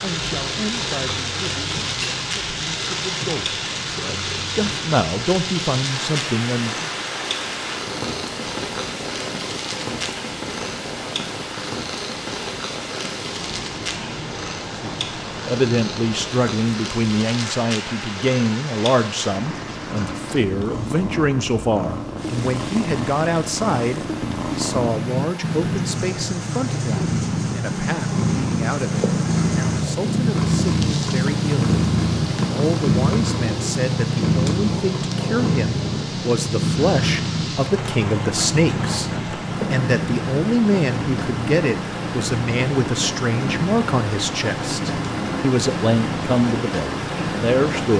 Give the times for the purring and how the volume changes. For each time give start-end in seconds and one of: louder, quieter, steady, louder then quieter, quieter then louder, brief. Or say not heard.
0.0-47.9 louder then quieter.